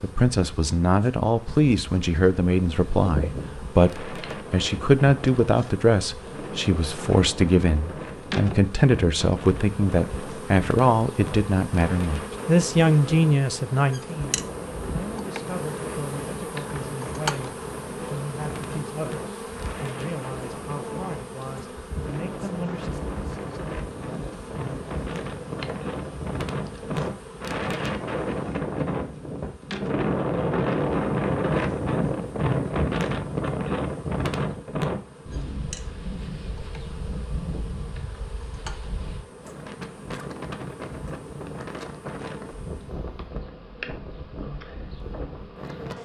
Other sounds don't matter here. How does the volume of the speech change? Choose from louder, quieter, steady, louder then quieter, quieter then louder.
quieter.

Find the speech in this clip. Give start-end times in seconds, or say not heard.
0.0-22.9.